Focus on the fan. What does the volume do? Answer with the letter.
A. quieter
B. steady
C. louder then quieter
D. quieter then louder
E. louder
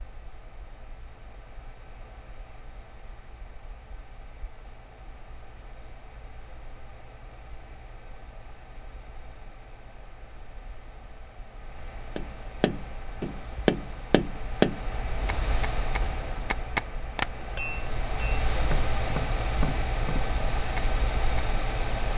E.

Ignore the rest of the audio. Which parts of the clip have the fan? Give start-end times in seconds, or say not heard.
0.0-22.1.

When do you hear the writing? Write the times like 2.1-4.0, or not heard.
not heard.